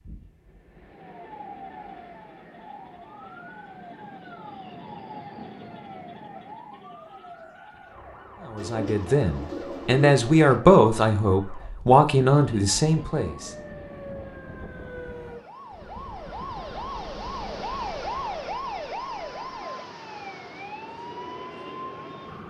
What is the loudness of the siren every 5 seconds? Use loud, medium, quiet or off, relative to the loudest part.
medium, medium, medium, loud, medium.